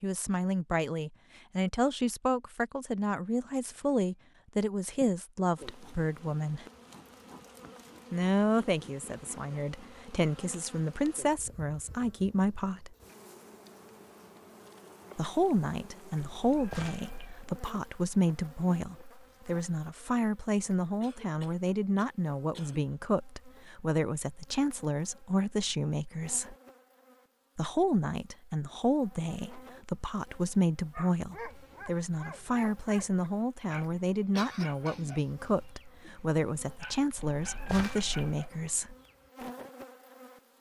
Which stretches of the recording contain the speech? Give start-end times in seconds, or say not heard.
0.0-6.7, 8.1-12.9, 15.2-26.6, 27.6-39.0.